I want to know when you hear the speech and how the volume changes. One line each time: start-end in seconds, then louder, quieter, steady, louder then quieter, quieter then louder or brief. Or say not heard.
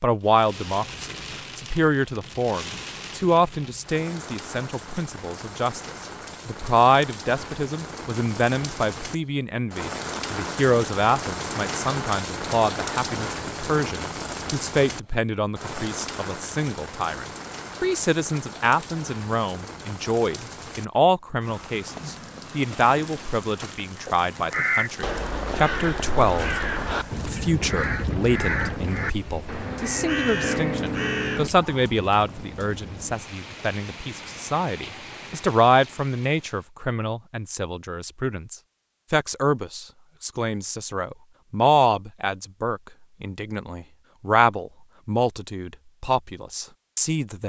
0.0-47.4 steady.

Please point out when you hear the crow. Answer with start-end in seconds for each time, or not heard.
24.4-31.9.